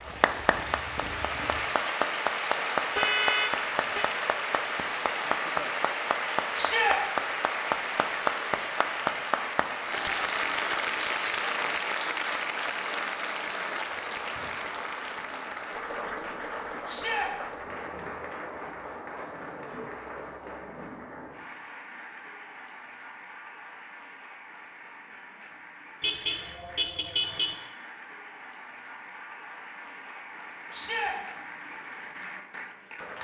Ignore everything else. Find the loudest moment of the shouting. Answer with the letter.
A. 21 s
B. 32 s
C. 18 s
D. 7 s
D.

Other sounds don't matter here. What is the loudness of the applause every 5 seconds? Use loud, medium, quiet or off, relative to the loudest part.
loud, loud, loud, medium, quiet, quiet, quiet.